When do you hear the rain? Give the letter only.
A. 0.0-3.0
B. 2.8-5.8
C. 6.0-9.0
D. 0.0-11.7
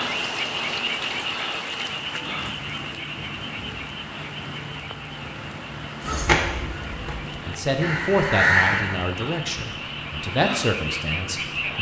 D.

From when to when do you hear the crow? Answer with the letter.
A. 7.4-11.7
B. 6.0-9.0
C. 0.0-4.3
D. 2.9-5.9
B.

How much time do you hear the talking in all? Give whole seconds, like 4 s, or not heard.
4 s.